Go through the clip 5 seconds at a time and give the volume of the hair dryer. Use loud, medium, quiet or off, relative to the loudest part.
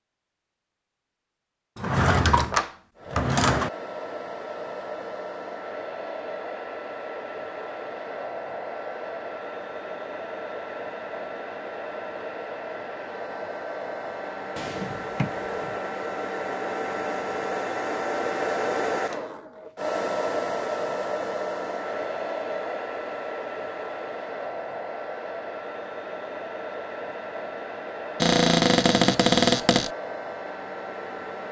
medium, medium, medium, loud, loud, medium, medium.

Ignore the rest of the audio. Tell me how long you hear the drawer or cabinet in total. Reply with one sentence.
You can hear the drawer or cabinet for 5 seconds altogether.